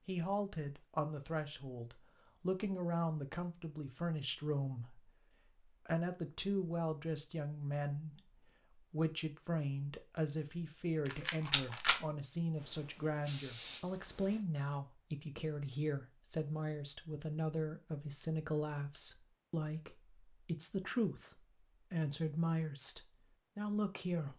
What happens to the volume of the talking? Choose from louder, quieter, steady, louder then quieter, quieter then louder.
steady.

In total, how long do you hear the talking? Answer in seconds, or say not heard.
24 s.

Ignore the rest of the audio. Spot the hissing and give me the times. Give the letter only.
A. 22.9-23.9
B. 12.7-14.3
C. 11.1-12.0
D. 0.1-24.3
B.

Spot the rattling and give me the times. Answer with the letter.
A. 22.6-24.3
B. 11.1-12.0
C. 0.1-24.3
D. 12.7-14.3
B.